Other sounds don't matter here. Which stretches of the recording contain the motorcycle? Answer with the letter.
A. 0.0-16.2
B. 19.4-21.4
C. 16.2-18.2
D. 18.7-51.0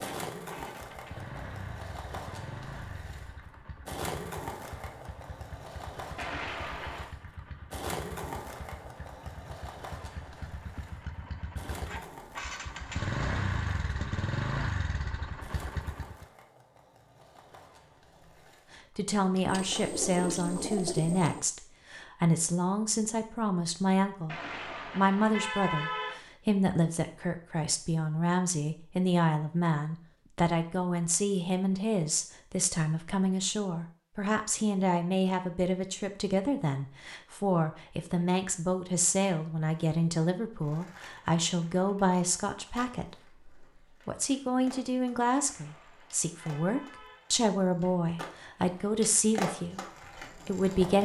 A.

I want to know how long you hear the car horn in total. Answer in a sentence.
You can hear the car horn for 5 seconds altogether.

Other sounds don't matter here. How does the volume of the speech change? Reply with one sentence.
The loudness of the speech stays about the same.